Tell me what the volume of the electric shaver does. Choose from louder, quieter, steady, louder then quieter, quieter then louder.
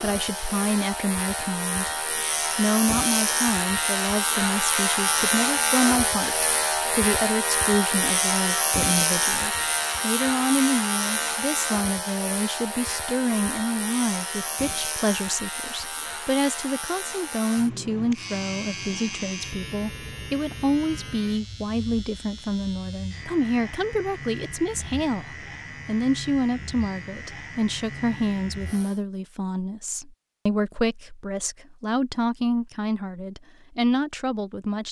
quieter.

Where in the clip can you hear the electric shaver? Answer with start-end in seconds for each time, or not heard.
0.0-29.0.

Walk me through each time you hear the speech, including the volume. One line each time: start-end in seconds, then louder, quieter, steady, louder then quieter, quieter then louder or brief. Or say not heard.
0.0-34.8 steady.